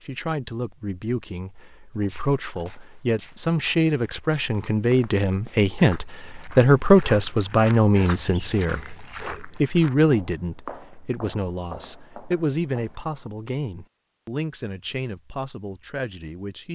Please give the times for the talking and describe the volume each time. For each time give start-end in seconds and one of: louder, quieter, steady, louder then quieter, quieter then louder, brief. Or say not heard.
0.0-16.7 louder then quieter.